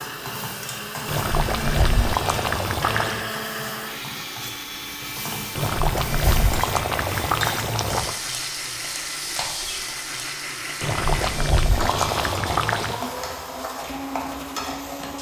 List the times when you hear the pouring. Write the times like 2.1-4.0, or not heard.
1.1-3.3, 5.5-8.2, 10.8-13.0.